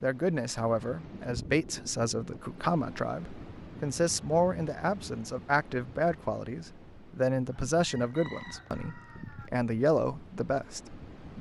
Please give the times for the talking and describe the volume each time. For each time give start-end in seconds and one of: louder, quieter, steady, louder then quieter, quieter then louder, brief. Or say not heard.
0.0-11.3 steady.